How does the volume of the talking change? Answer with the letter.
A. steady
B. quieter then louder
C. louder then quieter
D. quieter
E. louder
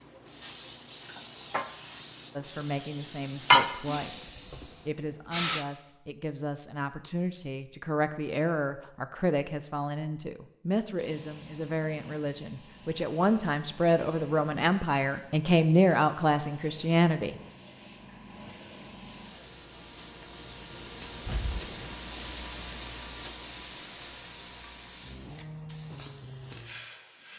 E.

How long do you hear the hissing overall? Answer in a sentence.
The hissing can be heard for 22 seconds in total.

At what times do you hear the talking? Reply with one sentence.
The talking can be heard from 2.4 to 17.4 s.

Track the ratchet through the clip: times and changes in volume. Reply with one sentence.
The ratchet can't be heard in this clip.